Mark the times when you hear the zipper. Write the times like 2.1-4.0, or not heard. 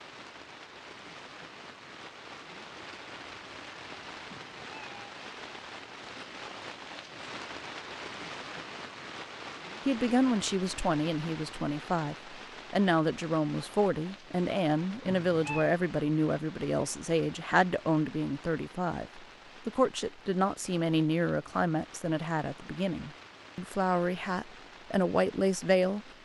not heard.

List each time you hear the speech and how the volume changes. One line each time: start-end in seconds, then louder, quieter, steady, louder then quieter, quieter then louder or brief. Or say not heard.
9.8-26.1 steady.